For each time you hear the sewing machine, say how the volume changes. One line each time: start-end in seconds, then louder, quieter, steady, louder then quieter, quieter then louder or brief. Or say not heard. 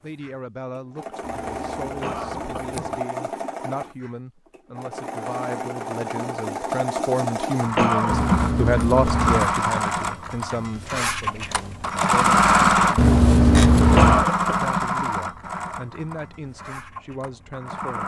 0.0-18.0 louder then quieter.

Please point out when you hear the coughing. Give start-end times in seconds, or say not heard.
2.0-3.0, 7.8-8.2, 13.9-14.6.